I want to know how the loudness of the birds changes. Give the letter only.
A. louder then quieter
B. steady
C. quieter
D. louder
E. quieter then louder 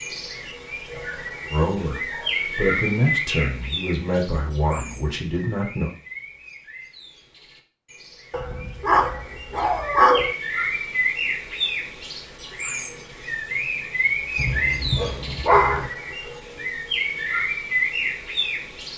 E.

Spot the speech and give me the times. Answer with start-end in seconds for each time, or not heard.
1.5-5.9.